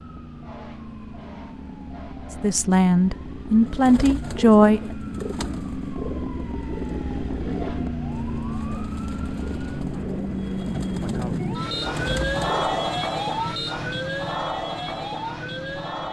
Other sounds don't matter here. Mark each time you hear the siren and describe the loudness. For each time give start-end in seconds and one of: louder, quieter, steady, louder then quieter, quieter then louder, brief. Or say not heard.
0.0-16.0 louder.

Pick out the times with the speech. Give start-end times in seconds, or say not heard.
2.4-4.8.